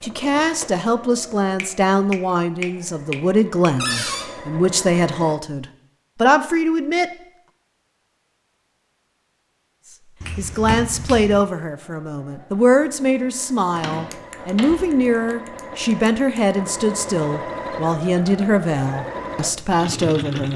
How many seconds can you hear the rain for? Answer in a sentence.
You can't hear the rain here.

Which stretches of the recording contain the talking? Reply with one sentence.
You can hear the talking from 0.0 to 7.1 s and from 10.3 to 20.5 s.